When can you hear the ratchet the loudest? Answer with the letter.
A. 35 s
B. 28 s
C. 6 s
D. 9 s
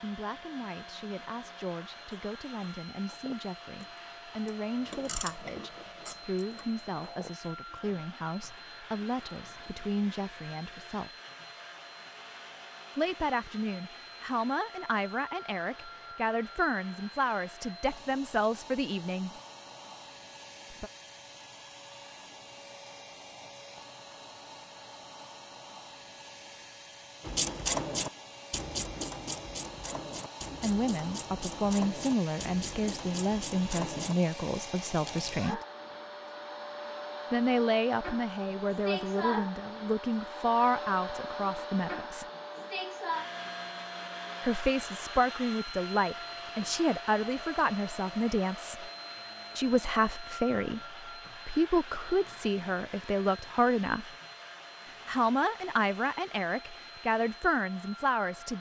B.